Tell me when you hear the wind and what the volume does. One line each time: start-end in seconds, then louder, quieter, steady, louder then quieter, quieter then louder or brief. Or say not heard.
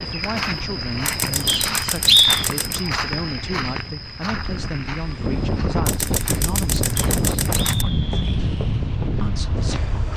0.0-10.1 louder.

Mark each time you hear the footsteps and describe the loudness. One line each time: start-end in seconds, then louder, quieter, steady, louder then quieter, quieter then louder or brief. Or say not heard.
0.0-10.1 quieter.